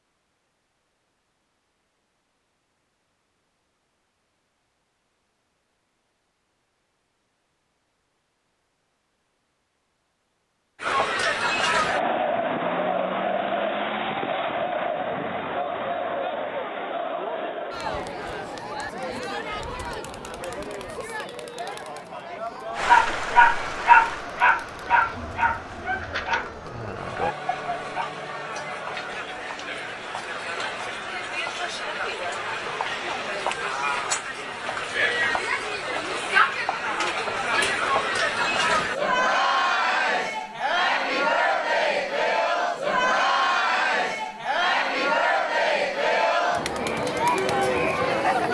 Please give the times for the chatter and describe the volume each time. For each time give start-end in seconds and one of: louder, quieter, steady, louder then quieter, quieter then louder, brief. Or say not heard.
10.8-48.5 quieter then louder.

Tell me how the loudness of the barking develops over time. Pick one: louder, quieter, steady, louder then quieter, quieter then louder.
quieter.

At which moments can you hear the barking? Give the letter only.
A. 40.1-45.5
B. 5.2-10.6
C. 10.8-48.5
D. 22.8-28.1
D.